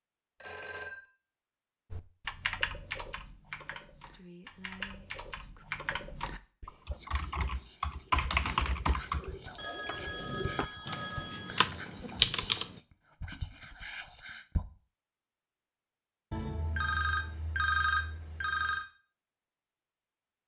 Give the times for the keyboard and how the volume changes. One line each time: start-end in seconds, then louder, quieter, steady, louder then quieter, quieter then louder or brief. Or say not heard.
1.9-12.8 louder.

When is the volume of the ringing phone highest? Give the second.
18 s.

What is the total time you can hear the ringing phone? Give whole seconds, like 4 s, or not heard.
5 s.